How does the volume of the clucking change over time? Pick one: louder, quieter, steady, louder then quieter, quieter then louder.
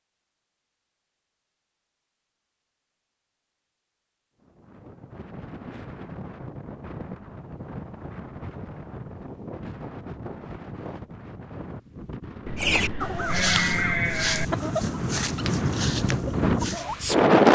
quieter.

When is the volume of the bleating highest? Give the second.
14 s.